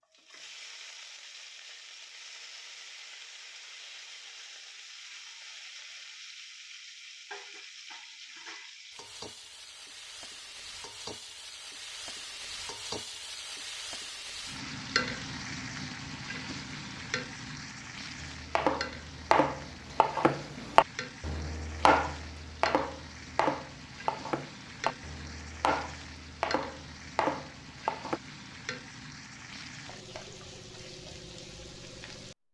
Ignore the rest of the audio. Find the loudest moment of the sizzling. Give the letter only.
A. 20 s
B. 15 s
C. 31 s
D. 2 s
B.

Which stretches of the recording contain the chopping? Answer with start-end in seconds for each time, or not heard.
18.2-28.2.